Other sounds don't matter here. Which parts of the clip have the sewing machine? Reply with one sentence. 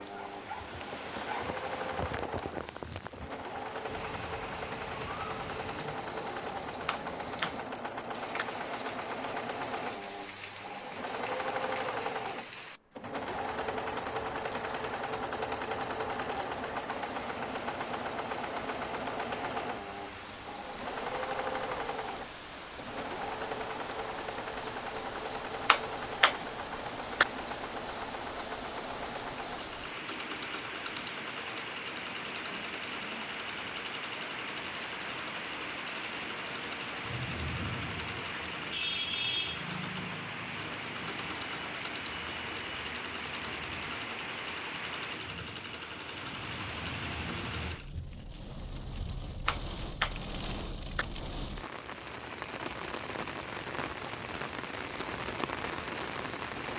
You can hear the sewing machine from 0.0 to 48.0 s.